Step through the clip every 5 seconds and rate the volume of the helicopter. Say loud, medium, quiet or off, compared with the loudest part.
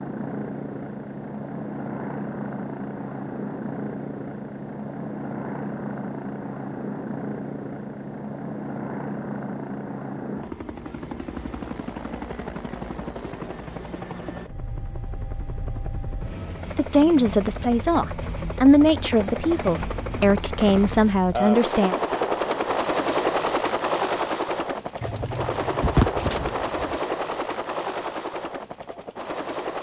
medium, medium, medium, medium, loud, loud.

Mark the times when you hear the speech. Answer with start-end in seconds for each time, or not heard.
16.8-21.9.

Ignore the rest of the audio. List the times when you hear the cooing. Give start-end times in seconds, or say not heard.
25.0-26.9.